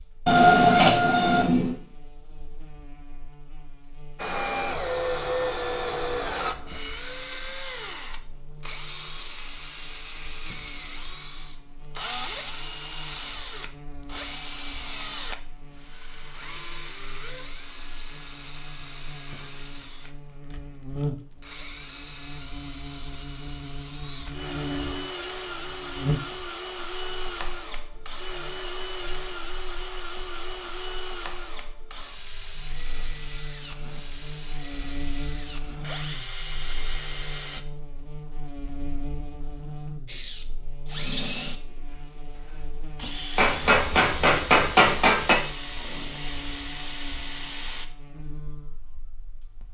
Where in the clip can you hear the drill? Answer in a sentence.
The drill can be heard from 4.2 to 37.6 s and from 40.0 to 47.9 s.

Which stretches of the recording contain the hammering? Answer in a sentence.
The hammering can be heard from 0.2 to 1.8 s and from 43.4 to 45.4 s.